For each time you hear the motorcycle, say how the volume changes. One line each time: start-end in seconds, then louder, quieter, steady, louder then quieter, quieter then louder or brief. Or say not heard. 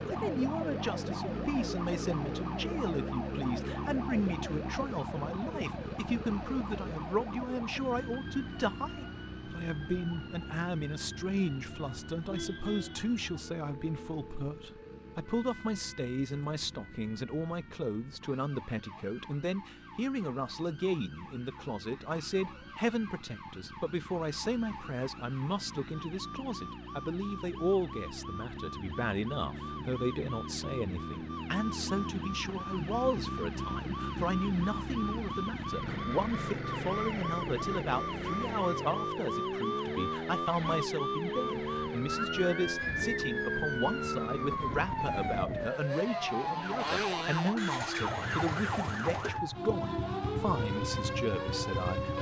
0.0-52.1 quieter then louder.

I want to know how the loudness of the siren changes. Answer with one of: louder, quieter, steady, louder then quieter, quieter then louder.
quieter then louder.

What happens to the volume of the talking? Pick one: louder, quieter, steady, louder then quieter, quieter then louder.
steady.